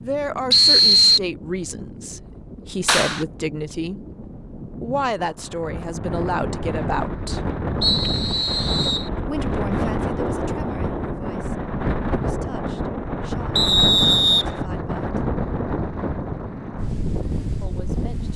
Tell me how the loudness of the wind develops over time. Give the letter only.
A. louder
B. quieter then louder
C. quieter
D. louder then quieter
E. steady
A.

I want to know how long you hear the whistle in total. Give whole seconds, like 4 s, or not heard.
3 s.